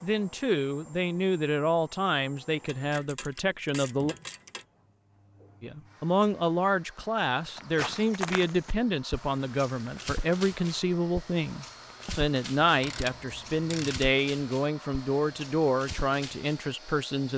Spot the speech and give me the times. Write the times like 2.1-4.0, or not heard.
0.0-4.2, 5.6-17.3.